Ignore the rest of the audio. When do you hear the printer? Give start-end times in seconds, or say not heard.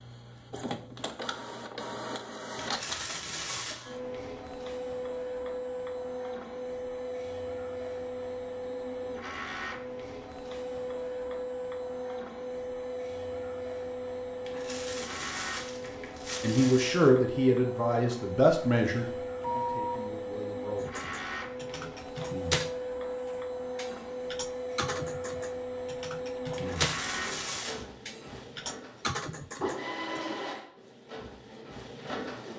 0.0-32.5.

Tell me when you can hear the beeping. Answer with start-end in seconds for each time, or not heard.
19.4-20.1.